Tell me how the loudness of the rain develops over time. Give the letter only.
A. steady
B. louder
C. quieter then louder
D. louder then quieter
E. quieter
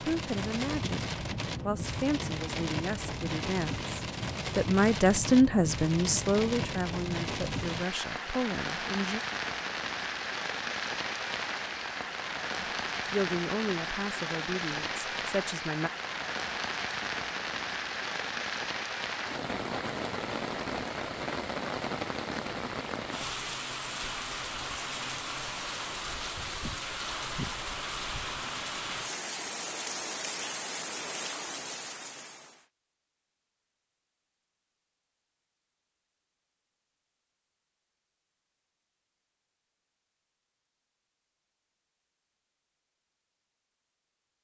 A.